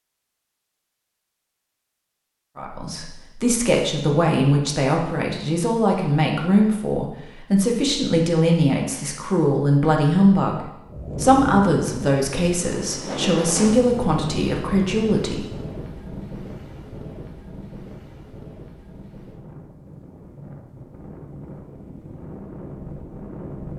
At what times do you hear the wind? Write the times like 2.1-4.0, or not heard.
10.8-23.7.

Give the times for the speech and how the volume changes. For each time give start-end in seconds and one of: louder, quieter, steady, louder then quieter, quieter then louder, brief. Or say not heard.
2.5-15.4 steady.